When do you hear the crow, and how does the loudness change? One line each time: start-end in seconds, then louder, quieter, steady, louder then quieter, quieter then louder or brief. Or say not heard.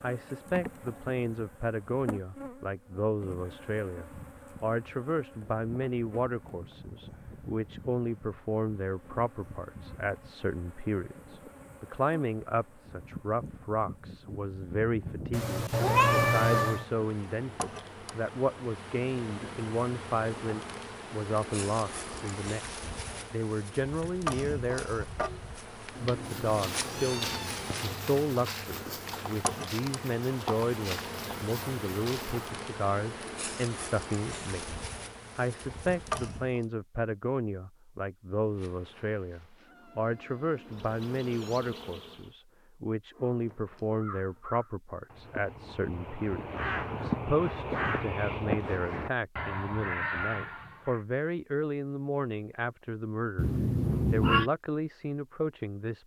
43.1-51.0 louder.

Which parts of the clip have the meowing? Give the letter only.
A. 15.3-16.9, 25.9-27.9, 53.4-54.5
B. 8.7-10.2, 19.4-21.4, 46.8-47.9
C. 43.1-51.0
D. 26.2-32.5
A.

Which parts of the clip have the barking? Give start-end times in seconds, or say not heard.
not heard.